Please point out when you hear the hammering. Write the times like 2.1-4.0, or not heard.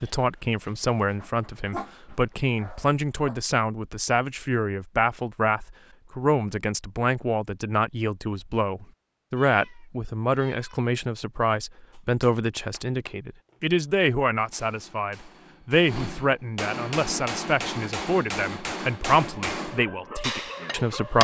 11.9-21.2.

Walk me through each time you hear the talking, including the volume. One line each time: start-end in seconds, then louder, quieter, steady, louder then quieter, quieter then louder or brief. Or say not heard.
0.0-21.2 steady.